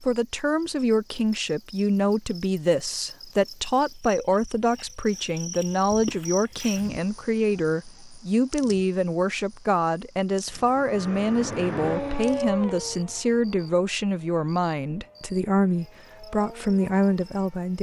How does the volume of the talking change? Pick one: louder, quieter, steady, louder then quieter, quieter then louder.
steady.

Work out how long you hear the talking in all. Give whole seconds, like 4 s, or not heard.
18 s.